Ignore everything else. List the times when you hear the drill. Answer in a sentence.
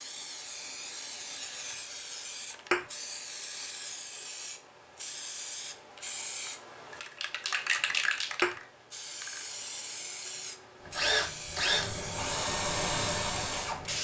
You can hear the drill from 10.8 to 13.9 s.